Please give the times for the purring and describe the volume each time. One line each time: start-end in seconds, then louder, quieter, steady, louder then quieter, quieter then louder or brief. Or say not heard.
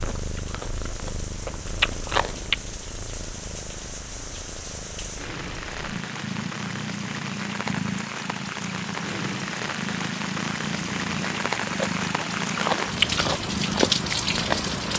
0.0-14.9 louder.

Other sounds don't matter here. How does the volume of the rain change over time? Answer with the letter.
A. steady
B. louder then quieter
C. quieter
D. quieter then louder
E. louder
E.